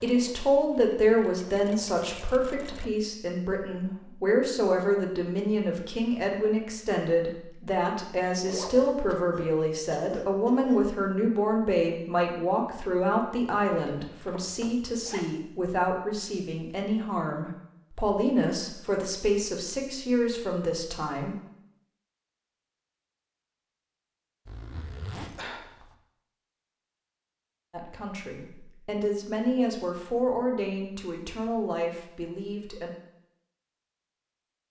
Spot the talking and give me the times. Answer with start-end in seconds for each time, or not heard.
0.0-21.4, 27.7-32.9.